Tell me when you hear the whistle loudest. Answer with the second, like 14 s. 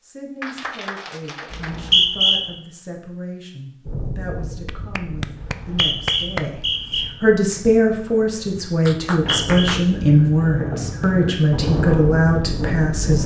2 s.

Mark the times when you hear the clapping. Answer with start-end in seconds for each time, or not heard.
0.4-1.9, 4.7-6.5, 8.8-10.3.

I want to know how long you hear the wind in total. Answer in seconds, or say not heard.
9 s.